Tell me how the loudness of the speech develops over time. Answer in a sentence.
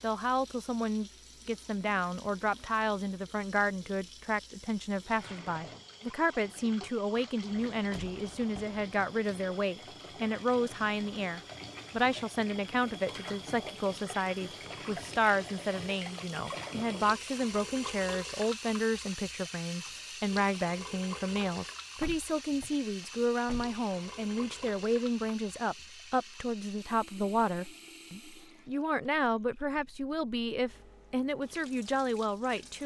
The loudness of the speech stays about the same.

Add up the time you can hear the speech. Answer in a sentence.
You can hear the speech for 33 seconds altogether.